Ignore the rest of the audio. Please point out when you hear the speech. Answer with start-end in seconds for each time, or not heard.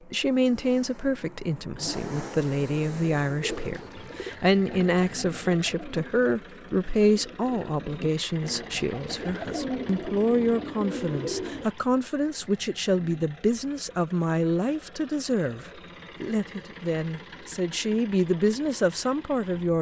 0.1-19.7.